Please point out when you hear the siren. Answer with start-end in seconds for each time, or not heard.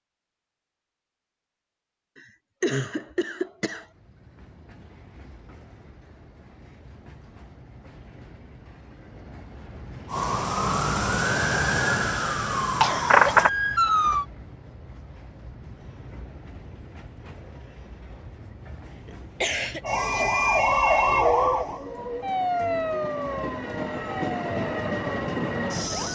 10.1-14.2, 19.8-26.1.